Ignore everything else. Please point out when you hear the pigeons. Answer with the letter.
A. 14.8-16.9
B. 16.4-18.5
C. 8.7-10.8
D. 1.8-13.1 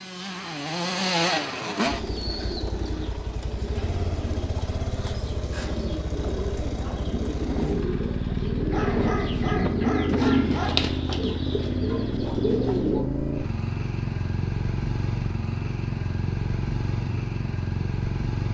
D.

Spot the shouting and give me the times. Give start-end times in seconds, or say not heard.
not heard.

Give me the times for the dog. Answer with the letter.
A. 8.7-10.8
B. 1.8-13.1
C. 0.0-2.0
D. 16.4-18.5
A.